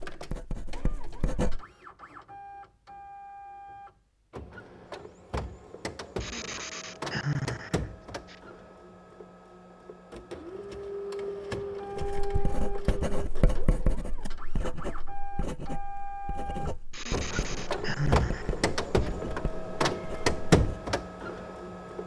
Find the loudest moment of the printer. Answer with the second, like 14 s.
20 s.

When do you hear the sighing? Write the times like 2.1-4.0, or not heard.
6.2-8.3, 16.9-19.1.